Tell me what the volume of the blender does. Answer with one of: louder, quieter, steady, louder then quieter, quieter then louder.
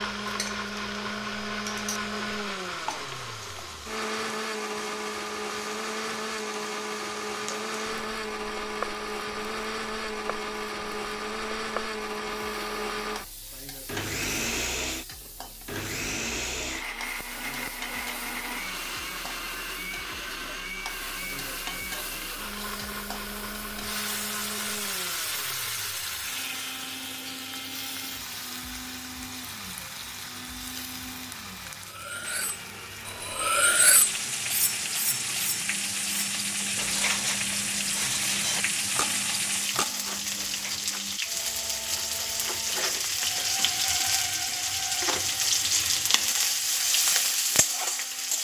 quieter.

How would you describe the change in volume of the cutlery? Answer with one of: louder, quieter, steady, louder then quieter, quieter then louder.
louder then quieter.